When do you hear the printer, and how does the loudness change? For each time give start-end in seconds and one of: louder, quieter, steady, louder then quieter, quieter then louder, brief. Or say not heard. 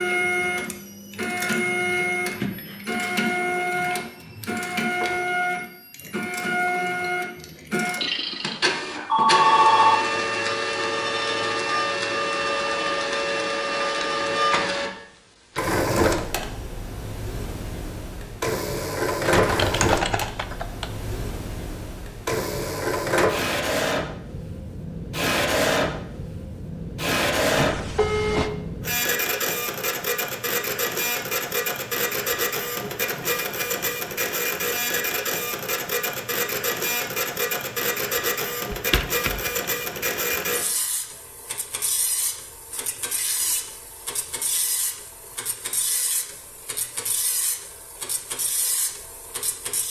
0.0-49.8 quieter.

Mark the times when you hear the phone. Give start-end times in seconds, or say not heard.
8.0-10.0, 27.6-28.5.